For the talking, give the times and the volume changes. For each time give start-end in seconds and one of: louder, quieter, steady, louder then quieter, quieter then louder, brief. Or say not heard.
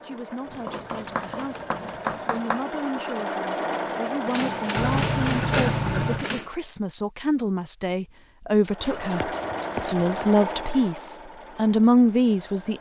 0.0-12.7 louder.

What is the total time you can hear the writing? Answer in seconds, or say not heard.
5 s.